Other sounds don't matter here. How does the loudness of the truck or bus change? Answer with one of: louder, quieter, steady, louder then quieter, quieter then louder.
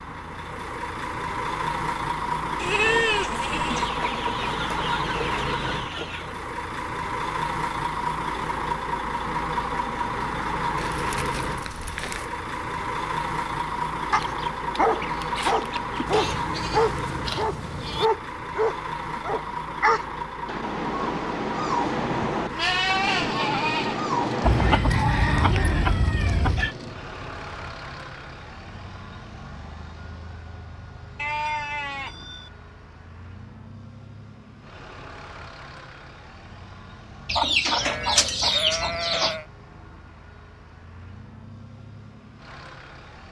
quieter.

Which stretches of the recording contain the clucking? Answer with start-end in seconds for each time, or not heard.
3.7-6.3, 14.1-16.1, 24.4-26.8, 37.2-39.4.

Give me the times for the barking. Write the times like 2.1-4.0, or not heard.
14.1-24.8.